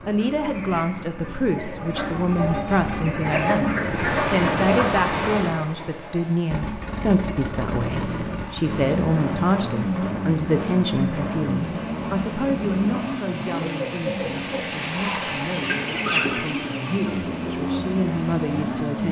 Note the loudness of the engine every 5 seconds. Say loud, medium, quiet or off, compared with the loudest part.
medium, loud, loud, loud.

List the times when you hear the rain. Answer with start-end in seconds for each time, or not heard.
3.9-19.0.